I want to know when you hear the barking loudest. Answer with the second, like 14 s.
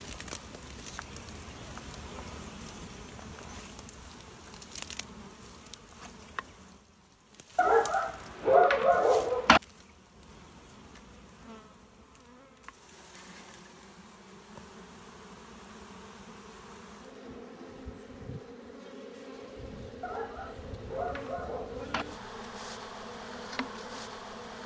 9 s.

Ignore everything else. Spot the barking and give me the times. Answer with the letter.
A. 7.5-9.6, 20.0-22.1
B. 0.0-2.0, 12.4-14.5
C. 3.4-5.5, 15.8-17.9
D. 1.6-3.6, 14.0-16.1
A.